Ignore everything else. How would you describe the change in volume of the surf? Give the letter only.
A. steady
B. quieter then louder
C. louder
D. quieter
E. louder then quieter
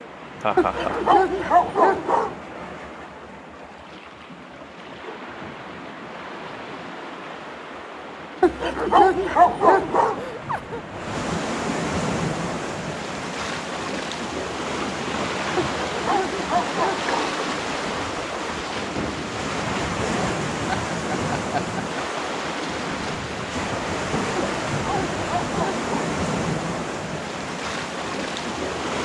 C.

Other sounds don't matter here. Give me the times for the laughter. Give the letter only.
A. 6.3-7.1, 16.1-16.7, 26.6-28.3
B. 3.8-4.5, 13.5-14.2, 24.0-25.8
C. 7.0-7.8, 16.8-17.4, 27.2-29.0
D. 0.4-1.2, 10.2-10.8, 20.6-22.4
D.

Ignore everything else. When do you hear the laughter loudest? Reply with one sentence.
The volume of the laughter peaks at 1 second.